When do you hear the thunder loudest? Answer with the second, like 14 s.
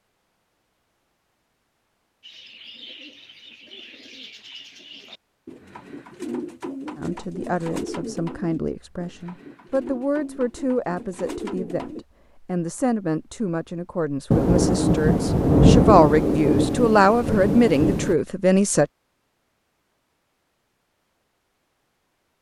16 s.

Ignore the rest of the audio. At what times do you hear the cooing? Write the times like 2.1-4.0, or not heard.
2.2-12.1.